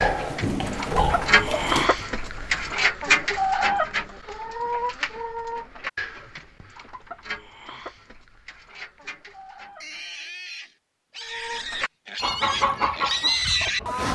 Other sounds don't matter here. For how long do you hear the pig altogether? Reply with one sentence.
The pig can be heard for 7 seconds in total.